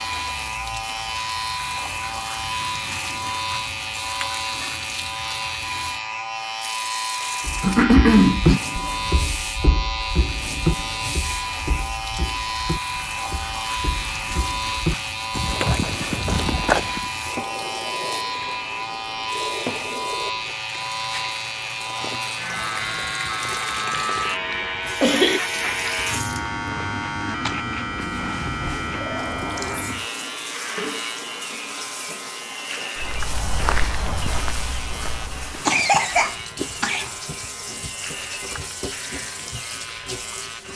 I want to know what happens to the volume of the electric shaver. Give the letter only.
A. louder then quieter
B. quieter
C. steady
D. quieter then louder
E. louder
B.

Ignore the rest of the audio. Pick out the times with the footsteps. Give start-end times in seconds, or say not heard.
7.5-17.1, 33.0-35.6.